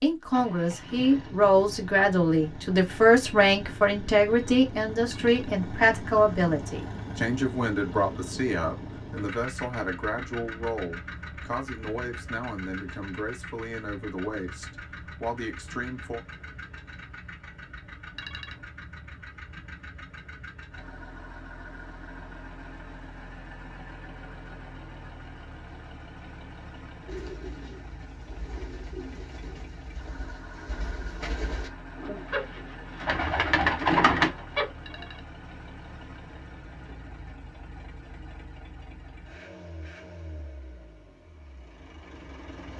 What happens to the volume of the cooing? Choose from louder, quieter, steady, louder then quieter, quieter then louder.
louder.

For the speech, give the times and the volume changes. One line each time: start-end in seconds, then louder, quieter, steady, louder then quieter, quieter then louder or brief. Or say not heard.
0.0-16.2 quieter.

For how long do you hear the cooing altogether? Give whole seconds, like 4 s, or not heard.
8 s.